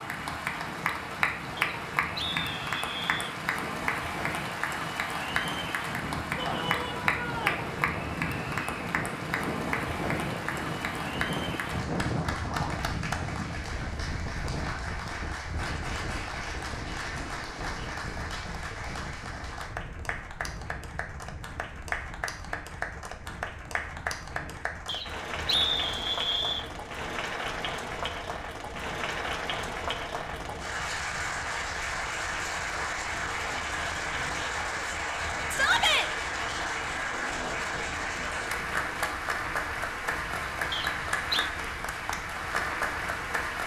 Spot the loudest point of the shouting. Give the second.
36 s.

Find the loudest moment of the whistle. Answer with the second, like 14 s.
26 s.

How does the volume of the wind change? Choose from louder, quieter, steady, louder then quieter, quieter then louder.
quieter.